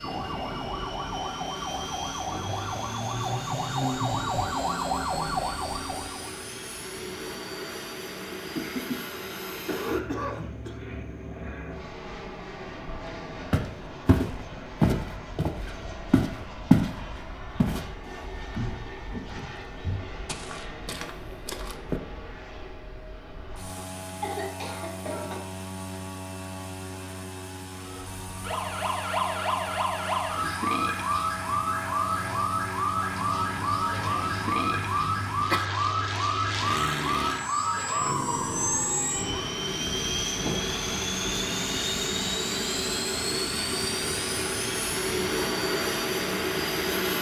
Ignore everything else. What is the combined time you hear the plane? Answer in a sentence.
You can hear the plane for 47 seconds altogether.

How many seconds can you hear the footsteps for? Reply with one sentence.
The footsteps can be heard for 8 seconds in total.